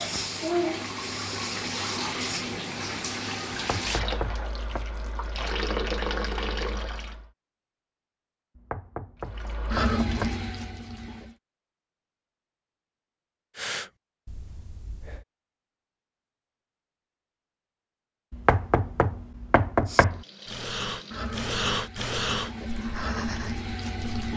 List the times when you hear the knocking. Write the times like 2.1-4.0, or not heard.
3.5-4.8, 8.6-10.4, 18.3-20.2.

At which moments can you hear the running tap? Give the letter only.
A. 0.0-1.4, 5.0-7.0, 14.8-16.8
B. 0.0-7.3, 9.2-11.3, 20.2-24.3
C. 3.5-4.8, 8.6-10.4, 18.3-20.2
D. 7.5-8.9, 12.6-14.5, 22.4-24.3
B.